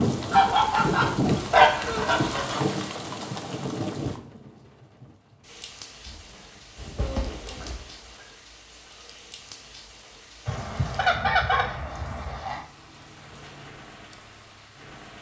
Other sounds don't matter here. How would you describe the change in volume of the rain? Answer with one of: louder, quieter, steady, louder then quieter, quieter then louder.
quieter.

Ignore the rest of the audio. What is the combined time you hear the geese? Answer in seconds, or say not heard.
7 s.